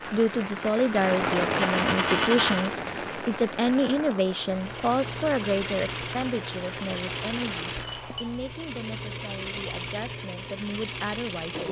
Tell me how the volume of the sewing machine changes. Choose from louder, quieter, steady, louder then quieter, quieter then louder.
steady.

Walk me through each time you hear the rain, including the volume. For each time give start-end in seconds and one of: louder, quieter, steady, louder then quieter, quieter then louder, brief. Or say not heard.
0.0-8.6 quieter.